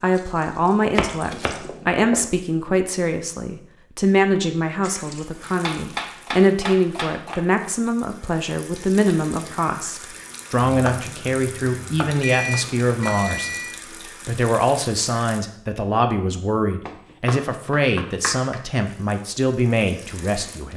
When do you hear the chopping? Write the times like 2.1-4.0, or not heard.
0.9-2.2, 5.5-7.7, 10.7-13.3, 16.9-18.6.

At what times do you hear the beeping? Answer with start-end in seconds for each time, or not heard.
12.2-13.8.